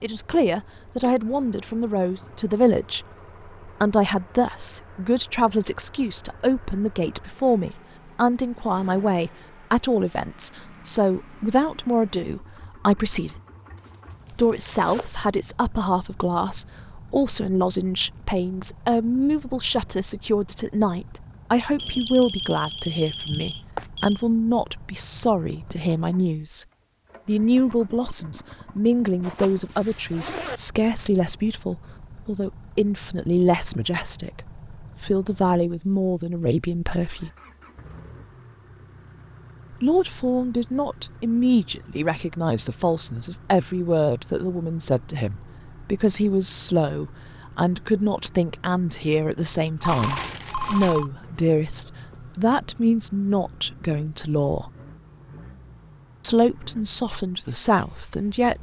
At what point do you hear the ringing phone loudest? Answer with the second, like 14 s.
50 s.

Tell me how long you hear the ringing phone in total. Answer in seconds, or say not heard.
4 s.